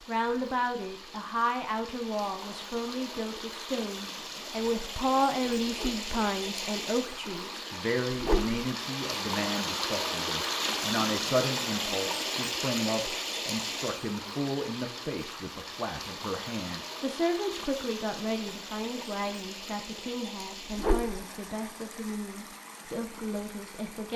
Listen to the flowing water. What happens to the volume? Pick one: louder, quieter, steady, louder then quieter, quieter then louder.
louder then quieter.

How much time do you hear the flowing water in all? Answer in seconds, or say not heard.
24 s.